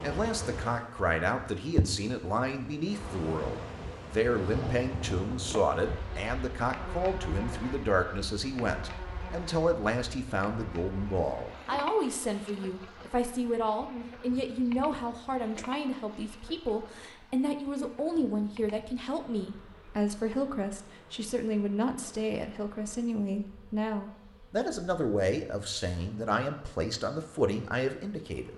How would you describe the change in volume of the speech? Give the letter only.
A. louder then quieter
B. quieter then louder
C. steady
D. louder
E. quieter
C.